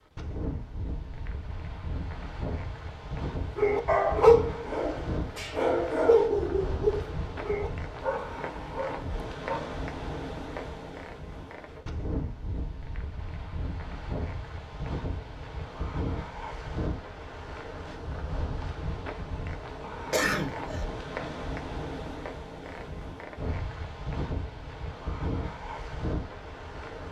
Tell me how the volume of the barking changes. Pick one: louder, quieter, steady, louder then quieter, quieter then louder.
quieter.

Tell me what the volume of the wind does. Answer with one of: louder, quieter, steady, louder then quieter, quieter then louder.
steady.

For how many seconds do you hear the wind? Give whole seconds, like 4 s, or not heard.
27 s.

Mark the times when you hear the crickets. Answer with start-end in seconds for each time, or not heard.
not heard.